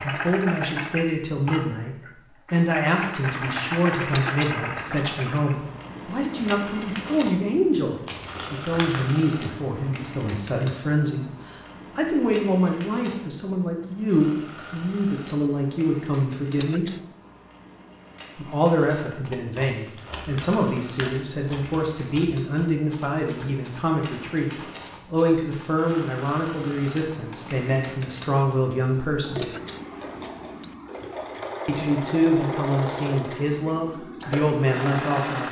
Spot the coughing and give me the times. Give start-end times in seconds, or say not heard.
4.1-5.2, 16.6-17.1, 29.4-30.8.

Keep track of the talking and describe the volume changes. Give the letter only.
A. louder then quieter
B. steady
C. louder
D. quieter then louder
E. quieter
B.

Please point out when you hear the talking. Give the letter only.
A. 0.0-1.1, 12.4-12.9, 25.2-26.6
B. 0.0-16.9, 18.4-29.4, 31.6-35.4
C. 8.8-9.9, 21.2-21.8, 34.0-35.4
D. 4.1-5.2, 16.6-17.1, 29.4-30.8
B.